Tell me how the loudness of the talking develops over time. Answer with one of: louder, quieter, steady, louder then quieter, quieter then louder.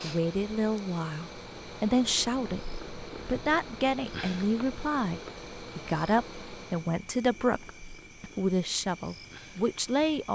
steady.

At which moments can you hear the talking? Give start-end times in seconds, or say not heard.
0.0-10.3.